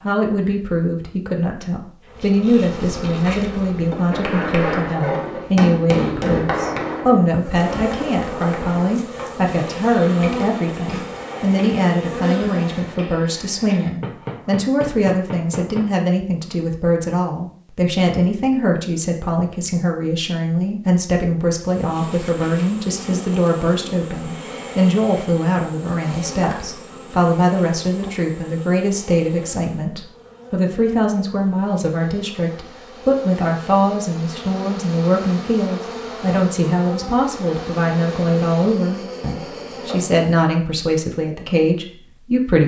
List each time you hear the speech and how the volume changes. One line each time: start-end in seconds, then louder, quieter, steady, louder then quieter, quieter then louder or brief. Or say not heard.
0.0-42.6 steady.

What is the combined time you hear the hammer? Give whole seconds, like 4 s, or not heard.
12 s.